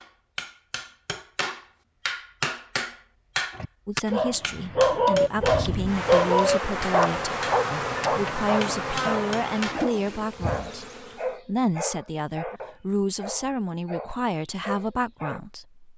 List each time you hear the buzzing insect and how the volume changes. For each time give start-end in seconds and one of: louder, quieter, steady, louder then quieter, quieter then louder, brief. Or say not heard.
5.2-11.4 quieter.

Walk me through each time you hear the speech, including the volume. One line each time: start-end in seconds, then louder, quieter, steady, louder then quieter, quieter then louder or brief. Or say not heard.
3.9-15.8 steady.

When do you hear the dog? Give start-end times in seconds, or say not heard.
3.5-15.4.